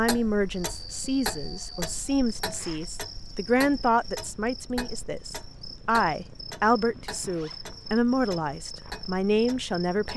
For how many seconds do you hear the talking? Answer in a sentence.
The talking can be heard for 10 seconds in total.